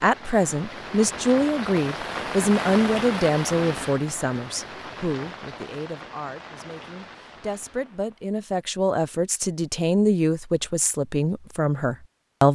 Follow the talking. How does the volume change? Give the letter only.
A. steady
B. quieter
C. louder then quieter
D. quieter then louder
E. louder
D.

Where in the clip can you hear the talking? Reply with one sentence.
You can hear the talking from 0.0 to 12.5 s.